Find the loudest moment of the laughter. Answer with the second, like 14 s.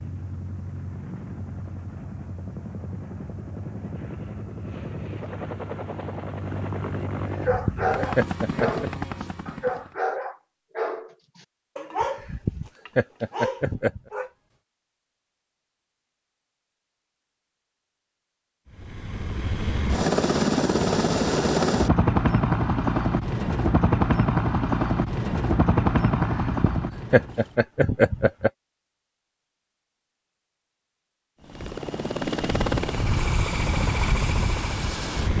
28 s.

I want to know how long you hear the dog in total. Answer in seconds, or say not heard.
7 s.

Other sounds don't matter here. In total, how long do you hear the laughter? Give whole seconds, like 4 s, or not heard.
6 s.